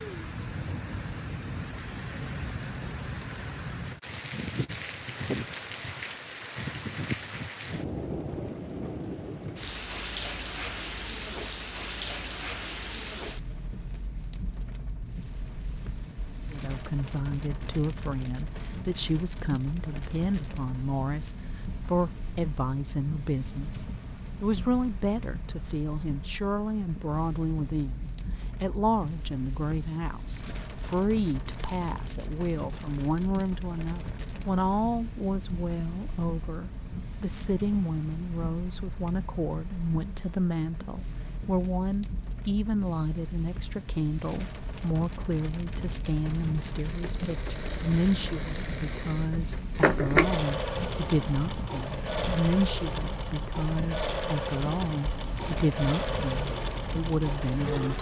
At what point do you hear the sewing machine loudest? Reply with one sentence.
The volume of the sewing machine peaks at 50 seconds.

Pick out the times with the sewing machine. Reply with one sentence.
The sewing machine can be heard from 46.7 to 57.9 s.